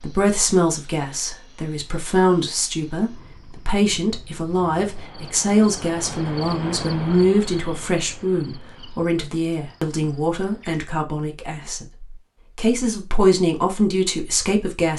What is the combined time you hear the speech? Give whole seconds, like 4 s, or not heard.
15 s.